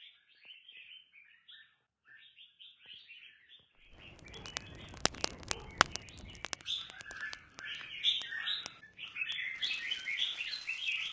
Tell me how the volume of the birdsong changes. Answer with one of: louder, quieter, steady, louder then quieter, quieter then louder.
louder.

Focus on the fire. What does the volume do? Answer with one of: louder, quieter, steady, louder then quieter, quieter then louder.
quieter.